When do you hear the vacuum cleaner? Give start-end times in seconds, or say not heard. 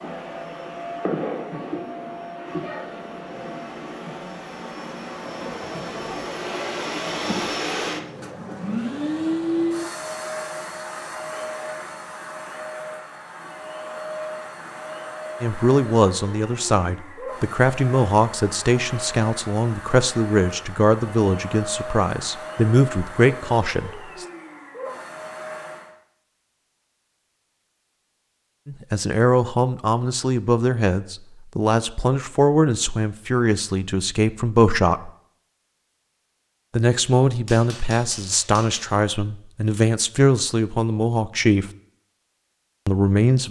0.0-25.9.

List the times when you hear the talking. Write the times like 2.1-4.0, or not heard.
15.4-24.2, 28.6-35.1, 36.7-41.6, 42.9-43.4.